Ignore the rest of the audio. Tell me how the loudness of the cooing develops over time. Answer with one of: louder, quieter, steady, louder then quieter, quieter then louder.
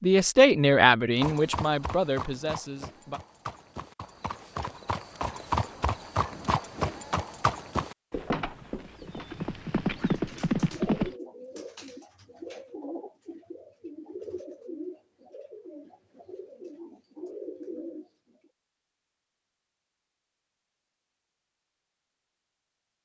quieter then louder.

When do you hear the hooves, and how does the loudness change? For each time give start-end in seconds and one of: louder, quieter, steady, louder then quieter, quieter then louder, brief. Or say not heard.
1.1-11.2 louder.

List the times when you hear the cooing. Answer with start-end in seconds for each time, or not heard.
9.9-18.5.